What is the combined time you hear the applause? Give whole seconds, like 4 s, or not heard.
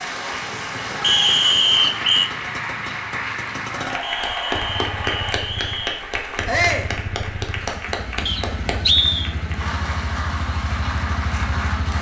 12 s.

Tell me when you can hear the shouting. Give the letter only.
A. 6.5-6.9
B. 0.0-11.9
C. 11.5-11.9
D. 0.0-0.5
A.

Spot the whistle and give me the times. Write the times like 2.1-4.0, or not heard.
1.0-2.3, 4.0-6.0, 8.2-9.3.